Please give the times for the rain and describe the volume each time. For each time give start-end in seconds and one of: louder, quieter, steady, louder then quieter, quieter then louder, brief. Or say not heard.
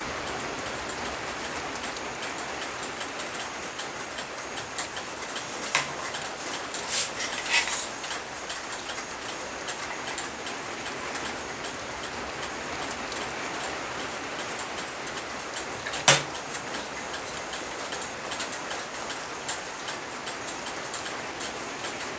0.0-22.1 steady.